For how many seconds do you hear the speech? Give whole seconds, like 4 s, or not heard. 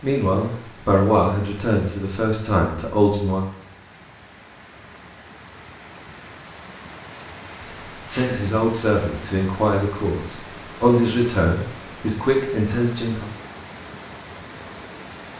9 s.